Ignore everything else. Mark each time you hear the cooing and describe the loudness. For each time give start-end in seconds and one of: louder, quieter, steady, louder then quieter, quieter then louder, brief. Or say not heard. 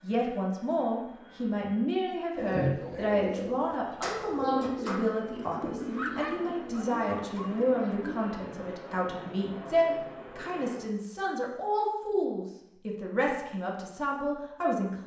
2.4-8.4 quieter.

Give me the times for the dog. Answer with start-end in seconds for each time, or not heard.
5.9-7.5.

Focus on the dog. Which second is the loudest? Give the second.
6 s.